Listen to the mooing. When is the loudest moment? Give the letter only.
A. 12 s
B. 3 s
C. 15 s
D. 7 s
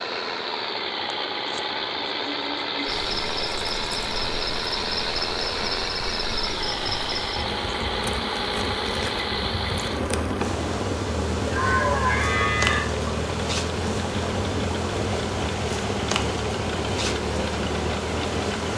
A.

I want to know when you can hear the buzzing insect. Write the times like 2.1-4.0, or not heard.
2.9-18.7.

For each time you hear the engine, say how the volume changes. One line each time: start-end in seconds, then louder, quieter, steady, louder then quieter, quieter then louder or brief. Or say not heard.
0.0-18.7 steady.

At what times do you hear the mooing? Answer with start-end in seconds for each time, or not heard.
1.6-2.9, 11.4-12.8.